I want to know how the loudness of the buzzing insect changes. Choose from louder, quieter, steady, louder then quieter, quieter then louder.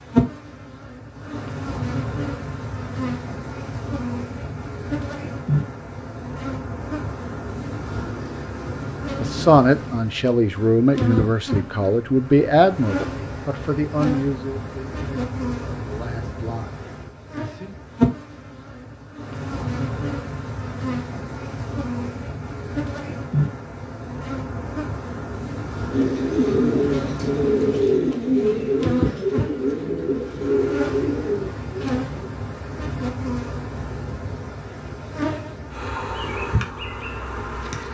steady.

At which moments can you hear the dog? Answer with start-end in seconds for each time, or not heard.
not heard.